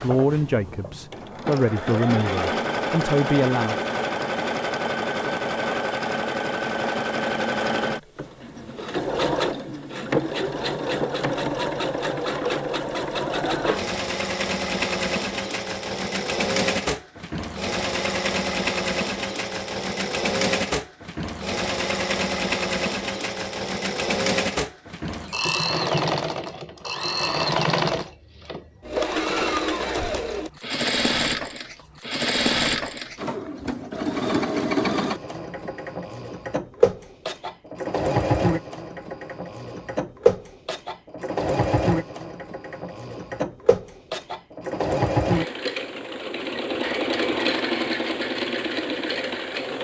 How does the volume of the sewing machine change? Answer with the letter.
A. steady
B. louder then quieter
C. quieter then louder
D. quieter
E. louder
A.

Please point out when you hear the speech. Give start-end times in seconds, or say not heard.
0.0-3.9.